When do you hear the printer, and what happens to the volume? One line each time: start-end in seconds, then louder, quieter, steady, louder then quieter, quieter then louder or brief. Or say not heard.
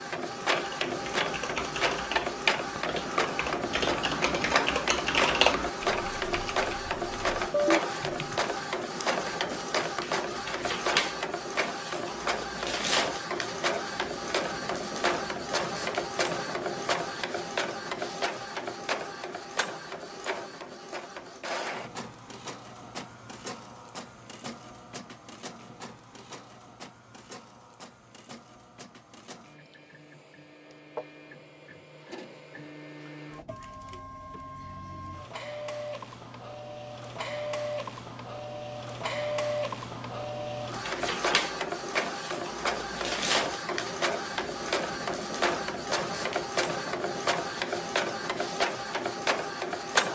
0.0-50.1 quieter then louder.